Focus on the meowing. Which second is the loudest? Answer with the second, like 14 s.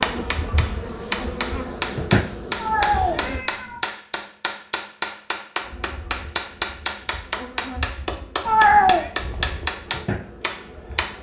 9 s.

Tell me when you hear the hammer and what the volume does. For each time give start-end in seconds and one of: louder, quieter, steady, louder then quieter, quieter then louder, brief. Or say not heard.
0.0-11.1 steady.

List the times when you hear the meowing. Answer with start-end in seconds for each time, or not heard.
2.5-3.9, 8.4-9.1.